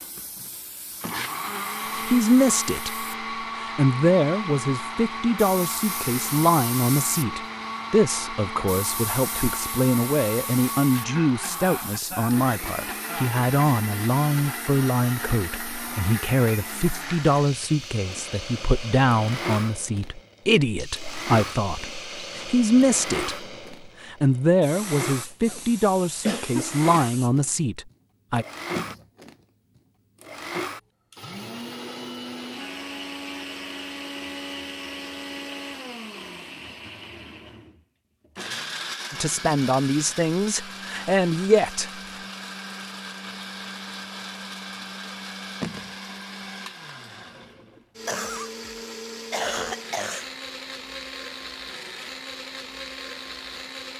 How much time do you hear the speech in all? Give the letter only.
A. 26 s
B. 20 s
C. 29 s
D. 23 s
C.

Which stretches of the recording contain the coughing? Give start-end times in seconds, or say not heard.
10.9-13.4, 25.4-27.2, 48.0-48.5, 49.3-50.2.